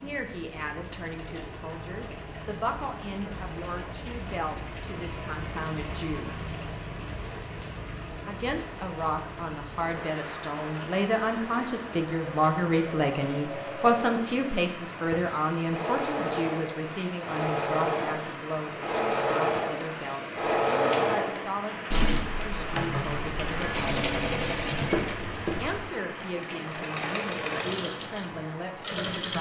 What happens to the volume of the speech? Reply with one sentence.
The loudness of the speech goes up, then down.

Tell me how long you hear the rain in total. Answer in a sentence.
You can hear the rain for 29 seconds altogether.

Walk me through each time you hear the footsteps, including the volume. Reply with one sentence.
You can't hear the footsteps here.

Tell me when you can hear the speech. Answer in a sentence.
The speech can be heard from 0.0 to 6.3 s, from 8.2 to 24.1 s and from 25.6 to 29.3 s.